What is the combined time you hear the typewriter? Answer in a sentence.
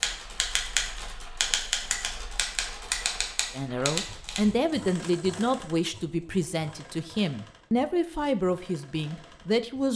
You can hear the typewriter for 5 seconds altogether.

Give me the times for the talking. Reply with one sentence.
The talking can be heard from 3.5 to 9.9 s.